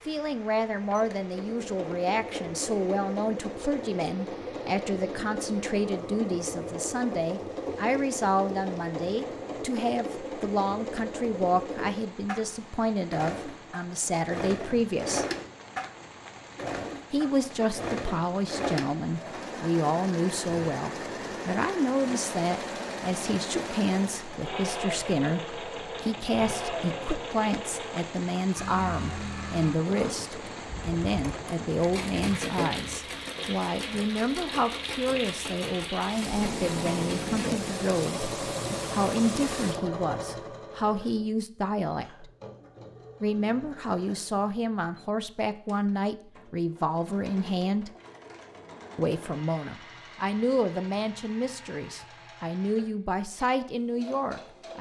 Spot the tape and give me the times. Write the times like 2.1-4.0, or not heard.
36.2-37.8.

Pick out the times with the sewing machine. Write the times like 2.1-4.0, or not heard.
0.0-54.7.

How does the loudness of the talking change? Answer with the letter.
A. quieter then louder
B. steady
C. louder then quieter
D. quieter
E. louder
B.